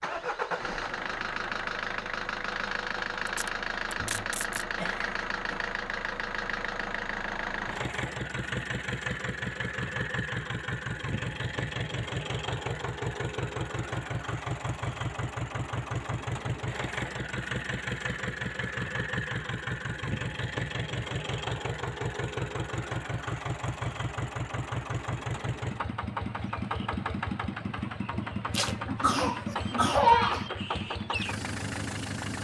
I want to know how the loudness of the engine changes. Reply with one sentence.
The loudness of the engine stays about the same.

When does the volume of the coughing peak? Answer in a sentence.
The volume of the coughing peaks at 30 seconds.